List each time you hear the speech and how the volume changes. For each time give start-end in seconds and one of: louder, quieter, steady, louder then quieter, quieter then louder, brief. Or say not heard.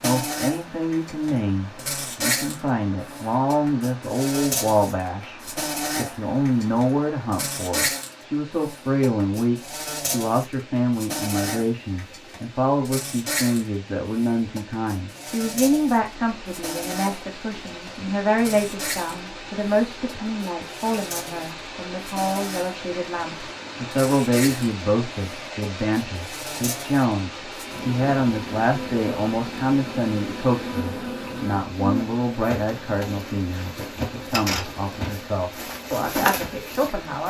0.0-37.2 steady.